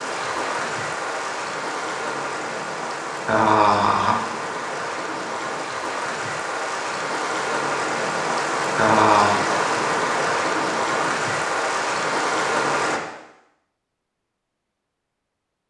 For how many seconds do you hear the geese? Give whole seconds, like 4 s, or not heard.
not heard.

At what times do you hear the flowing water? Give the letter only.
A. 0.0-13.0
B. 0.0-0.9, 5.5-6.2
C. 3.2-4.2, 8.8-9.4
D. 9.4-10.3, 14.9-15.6
A.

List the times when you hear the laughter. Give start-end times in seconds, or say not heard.
3.2-4.2, 8.8-9.4.